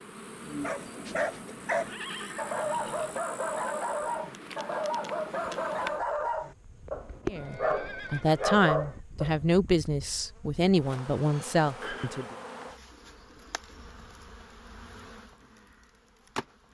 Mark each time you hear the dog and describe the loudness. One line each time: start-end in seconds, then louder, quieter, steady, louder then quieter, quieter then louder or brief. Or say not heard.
0.4-9.3 steady.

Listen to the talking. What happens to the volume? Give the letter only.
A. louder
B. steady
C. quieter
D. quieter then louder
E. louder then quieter
B.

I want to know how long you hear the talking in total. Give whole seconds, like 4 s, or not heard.
5 s.